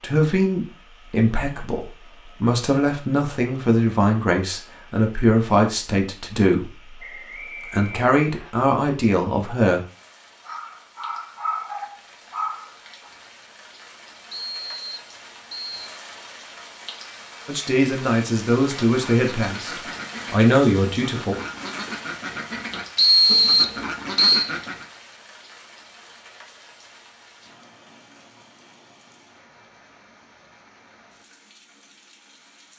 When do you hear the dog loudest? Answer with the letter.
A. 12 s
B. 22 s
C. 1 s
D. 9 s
A.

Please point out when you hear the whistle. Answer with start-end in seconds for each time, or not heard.
7.0-8.5, 14.3-15.8, 22.9-24.5.